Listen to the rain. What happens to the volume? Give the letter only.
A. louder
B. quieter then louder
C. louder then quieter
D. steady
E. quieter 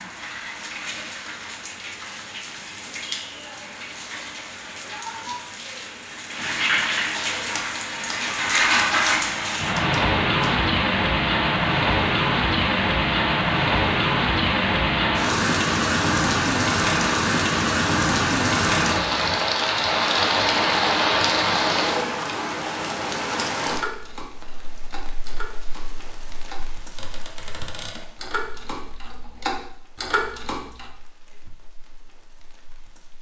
C.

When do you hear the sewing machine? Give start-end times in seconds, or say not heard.
not heard.